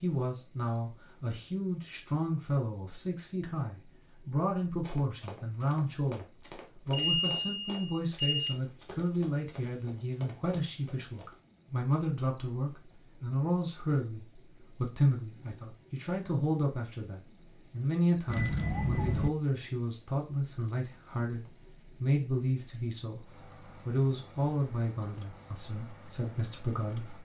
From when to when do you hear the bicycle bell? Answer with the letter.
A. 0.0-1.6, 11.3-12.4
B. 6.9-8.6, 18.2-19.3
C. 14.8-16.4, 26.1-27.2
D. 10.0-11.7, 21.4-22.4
B.